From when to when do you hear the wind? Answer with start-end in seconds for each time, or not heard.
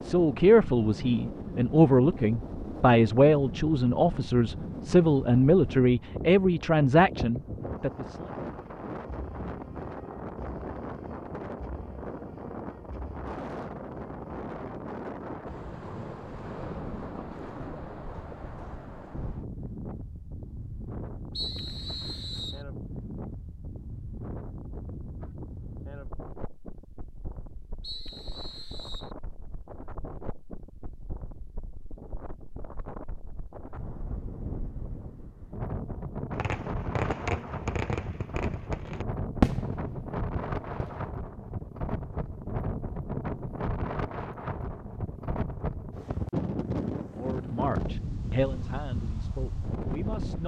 0.0-50.4.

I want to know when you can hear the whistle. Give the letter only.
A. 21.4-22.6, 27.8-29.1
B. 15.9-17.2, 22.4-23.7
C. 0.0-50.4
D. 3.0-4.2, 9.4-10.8
A.